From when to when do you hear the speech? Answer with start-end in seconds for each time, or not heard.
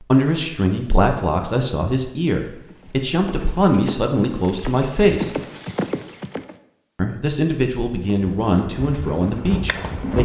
0.0-5.3, 7.0-10.1.